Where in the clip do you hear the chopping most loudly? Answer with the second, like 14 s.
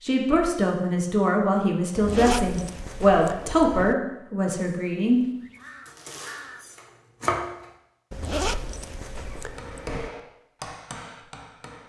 7 s.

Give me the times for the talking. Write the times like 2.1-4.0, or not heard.
0.0-5.2.